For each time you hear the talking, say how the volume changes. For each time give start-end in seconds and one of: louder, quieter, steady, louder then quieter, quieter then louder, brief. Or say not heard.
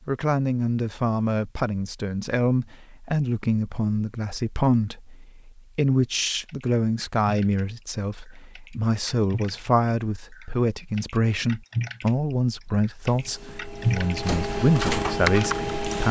0.1-16.0 steady.